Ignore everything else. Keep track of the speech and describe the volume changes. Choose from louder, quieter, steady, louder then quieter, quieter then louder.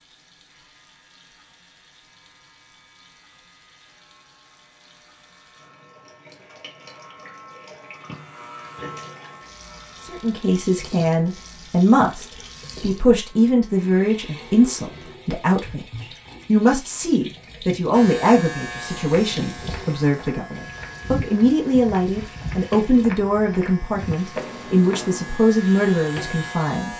steady.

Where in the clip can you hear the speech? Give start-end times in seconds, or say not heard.
10.0-26.9.